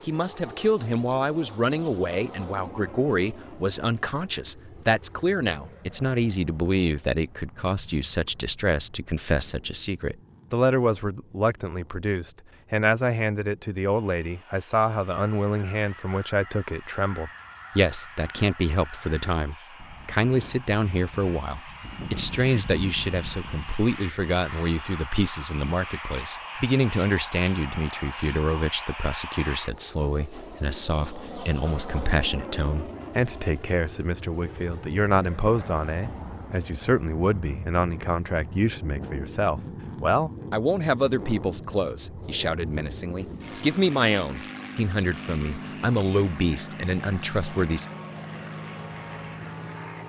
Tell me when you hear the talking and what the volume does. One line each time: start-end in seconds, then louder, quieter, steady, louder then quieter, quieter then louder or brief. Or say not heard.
0.1-47.9 steady.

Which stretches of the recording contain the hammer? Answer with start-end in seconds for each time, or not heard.
not heard.